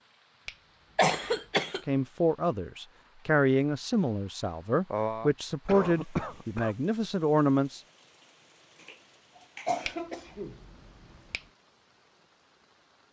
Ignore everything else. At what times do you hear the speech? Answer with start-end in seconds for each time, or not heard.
1.9-7.8.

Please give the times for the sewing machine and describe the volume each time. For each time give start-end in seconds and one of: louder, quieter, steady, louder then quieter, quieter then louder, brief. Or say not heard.
not heard.